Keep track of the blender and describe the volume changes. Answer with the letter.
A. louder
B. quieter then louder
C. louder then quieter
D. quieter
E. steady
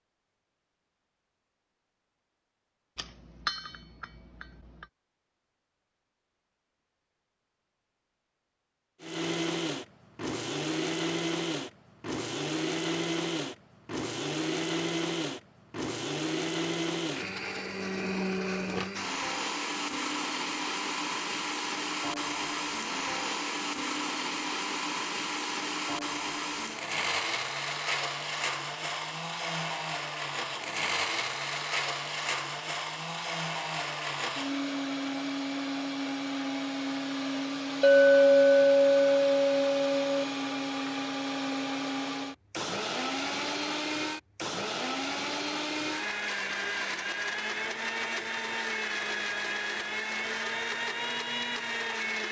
E.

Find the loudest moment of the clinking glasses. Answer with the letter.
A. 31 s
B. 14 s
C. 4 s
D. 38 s
D.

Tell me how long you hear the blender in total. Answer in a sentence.
The blender can be heard for 43 seconds in total.